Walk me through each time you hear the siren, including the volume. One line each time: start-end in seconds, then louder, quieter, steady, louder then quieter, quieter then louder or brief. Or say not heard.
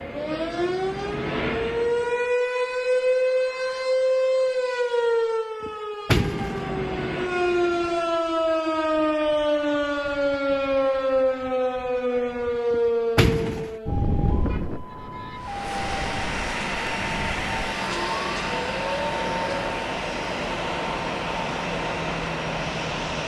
0.0-19.8 quieter.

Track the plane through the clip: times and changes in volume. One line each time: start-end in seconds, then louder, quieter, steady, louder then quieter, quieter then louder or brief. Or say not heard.
0.0-2.4 brief
6.2-8.2 brief
15.3-23.2 steady.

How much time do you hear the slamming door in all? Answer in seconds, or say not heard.
2 s.